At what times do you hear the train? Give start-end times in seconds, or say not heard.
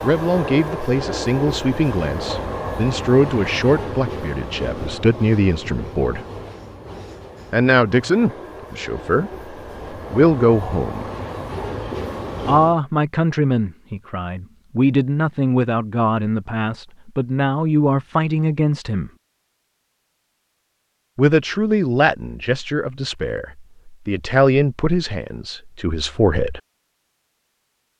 0.0-12.8.